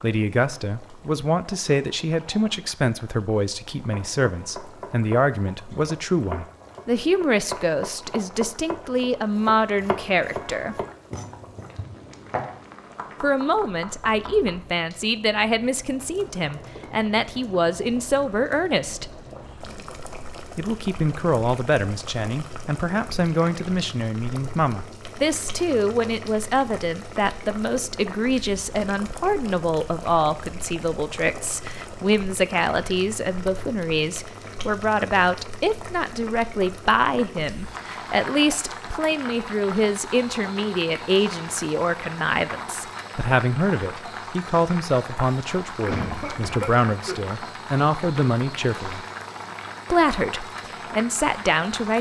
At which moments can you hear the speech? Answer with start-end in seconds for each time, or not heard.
0.0-10.8, 13.2-19.1, 20.6-49.0, 49.9-51.9.